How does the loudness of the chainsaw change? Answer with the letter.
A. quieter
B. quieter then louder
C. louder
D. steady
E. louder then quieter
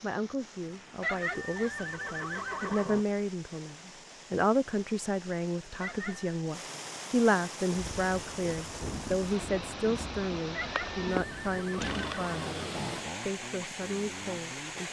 A.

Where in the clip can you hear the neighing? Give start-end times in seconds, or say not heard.
1.0-3.0, 5.8-6.3, 10.5-12.6.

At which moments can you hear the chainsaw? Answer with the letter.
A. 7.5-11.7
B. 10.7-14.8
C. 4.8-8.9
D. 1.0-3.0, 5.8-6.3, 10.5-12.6
B.